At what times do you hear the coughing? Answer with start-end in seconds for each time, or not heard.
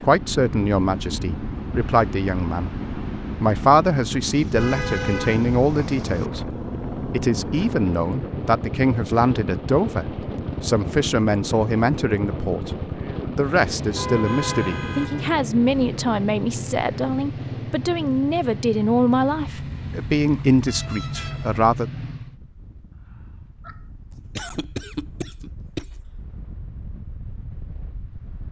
23.6-25.9.